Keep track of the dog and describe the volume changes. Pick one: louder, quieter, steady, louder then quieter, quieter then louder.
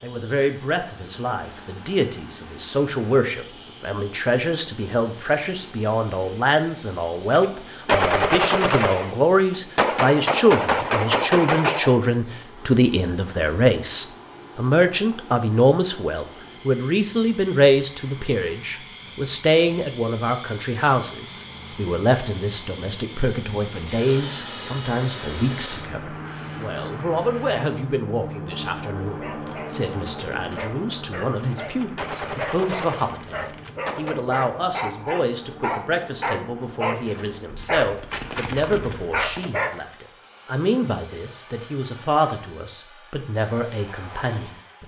louder.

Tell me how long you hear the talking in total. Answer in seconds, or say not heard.
45 s.